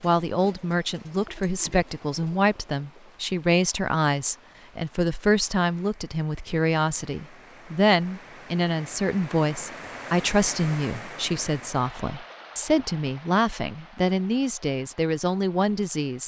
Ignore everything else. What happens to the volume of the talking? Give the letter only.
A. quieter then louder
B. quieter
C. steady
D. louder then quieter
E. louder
C.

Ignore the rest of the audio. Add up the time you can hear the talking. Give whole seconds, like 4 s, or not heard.
16 s.